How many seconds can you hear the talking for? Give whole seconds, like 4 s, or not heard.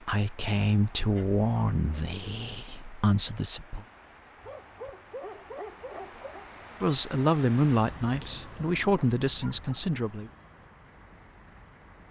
7 s.